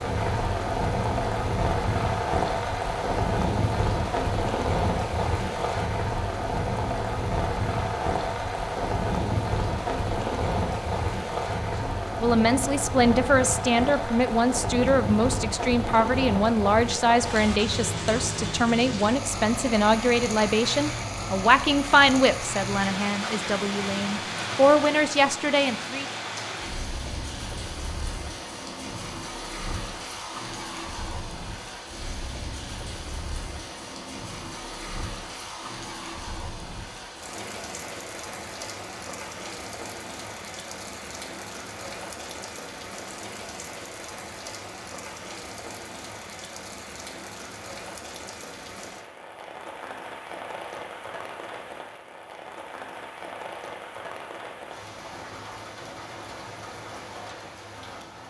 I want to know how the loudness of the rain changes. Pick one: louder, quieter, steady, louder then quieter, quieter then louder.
quieter.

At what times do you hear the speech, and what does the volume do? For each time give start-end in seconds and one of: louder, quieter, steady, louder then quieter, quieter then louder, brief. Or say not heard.
11.8-26.1 steady.